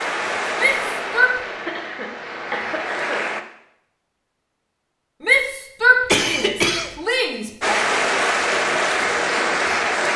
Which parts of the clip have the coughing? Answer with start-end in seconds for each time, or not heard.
1.6-3.3, 6.0-7.0.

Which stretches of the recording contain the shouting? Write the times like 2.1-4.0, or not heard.
0.6-1.4, 5.2-7.8.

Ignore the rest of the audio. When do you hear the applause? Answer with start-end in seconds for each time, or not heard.
0.0-3.5, 7.6-10.1.